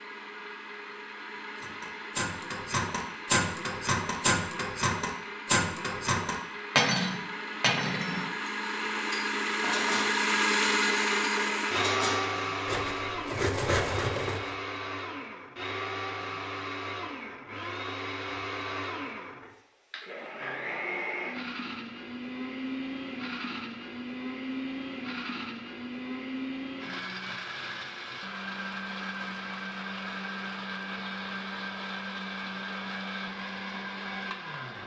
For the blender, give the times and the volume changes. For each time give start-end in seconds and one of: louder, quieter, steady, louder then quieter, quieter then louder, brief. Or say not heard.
0.0-34.8 louder then quieter.